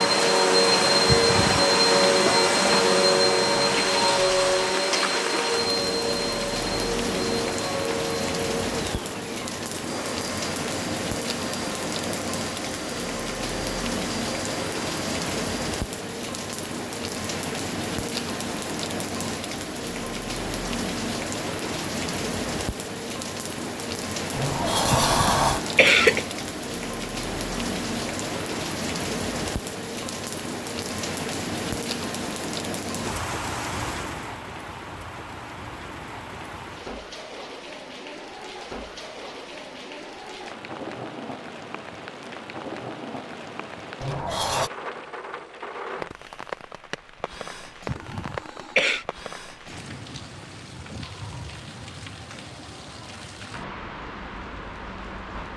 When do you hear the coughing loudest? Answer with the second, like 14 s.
26 s.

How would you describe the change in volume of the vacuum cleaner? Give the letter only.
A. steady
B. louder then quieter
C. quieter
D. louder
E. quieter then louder
C.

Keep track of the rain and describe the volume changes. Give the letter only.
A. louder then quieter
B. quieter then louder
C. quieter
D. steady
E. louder
C.